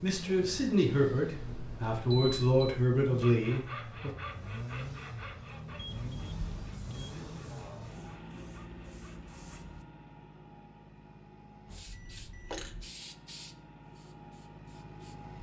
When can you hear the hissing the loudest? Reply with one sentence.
The volume of the hissing peaks at 13 seconds.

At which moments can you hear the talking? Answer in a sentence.
You can hear the talking from 0.0 to 4.1 s.